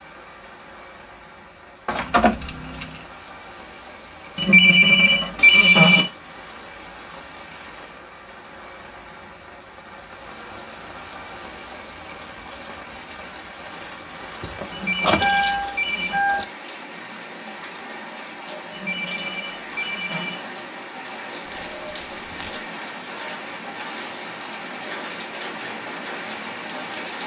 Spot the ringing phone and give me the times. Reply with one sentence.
You can hear the ringing phone from 4.3 to 6.0 s, from 14.7 to 16.2 s and from 18.7 to 20.4 s.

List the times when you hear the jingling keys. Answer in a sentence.
You can hear the jingling keys from 1.9 to 3.0 s, from 14.4 to 16.4 s and from 21.4 to 22.6 s.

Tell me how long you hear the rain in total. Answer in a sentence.
The rain can be heard for 27 seconds in total.